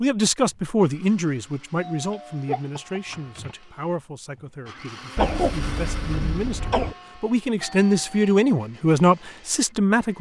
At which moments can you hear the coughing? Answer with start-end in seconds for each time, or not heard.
2.5-3.2, 5.2-7.0.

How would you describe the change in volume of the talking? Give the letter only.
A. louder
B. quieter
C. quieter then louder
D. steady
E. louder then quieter
C.